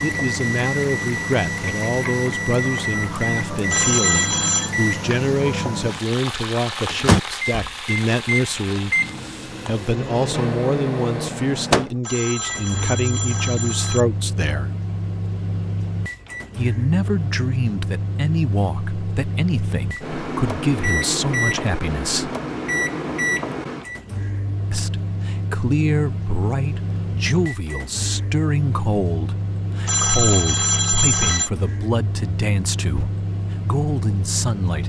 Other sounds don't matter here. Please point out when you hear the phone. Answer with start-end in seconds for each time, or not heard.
3.7-4.7, 12.1-14.1, 29.9-31.5.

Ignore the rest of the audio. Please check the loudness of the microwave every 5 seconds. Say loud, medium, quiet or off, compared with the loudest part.
loud, loud, loud, medium, loud, medium, medium.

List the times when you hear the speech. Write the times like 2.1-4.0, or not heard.
0.0-14.7, 16.6-22.4, 24.7-34.8.